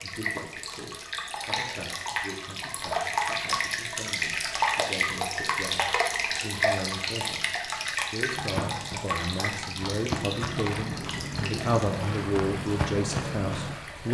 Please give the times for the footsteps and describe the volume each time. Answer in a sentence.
You can hear the footsteps from 8.3 to 13.8 s, getting louder.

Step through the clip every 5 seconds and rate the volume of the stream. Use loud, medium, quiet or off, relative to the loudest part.
loud, loud, medium.